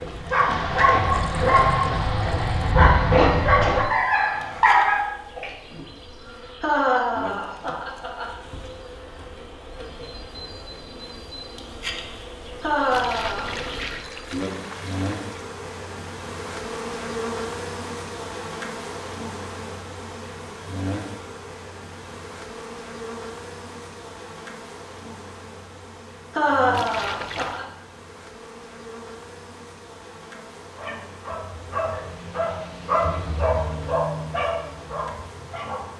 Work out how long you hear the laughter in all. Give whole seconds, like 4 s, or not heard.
4 s.